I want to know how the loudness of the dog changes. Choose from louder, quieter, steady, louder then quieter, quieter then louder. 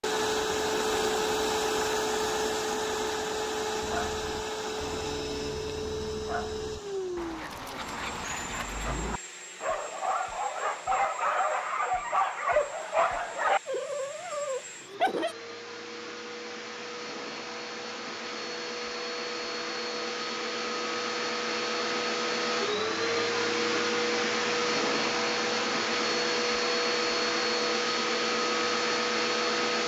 louder.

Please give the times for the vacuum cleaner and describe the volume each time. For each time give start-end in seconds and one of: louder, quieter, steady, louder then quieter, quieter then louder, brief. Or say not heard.
0.0-29.8 quieter then louder.